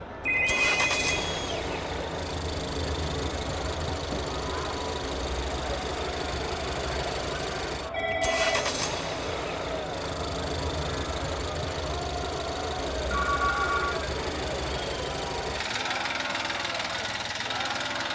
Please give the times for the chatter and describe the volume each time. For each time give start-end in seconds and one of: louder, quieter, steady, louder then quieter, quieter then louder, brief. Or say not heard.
0.0-18.1 steady.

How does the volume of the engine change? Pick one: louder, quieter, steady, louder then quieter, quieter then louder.
steady.